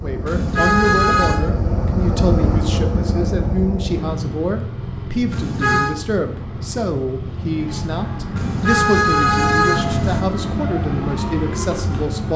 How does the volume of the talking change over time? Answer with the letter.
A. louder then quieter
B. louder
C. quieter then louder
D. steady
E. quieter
D.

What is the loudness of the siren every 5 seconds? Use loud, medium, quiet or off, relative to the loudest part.
off, loud, loud.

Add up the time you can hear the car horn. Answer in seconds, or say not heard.
4 s.